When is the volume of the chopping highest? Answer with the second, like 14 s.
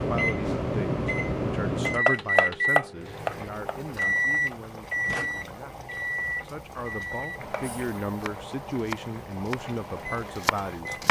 2 s.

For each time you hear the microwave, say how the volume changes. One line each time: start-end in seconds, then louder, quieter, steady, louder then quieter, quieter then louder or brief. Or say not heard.
0.0-11.0 quieter.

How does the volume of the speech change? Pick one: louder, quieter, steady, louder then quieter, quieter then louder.
quieter then louder.